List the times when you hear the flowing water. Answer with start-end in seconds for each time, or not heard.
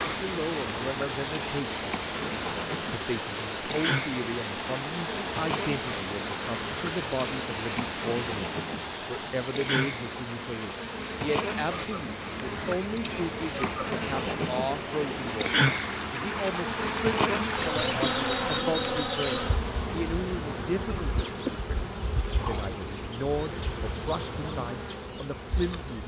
0.0-18.6.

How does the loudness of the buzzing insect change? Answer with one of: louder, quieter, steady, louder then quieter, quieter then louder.
louder then quieter.